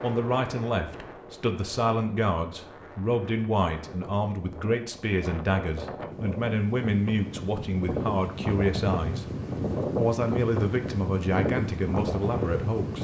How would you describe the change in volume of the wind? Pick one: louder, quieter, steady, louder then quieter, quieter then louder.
louder.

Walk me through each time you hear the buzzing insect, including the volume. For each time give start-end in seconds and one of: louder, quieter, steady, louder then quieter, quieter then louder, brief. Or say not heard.
not heard.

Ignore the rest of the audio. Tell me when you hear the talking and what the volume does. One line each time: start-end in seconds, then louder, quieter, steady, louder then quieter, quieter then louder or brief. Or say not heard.
0.0-12.9 steady.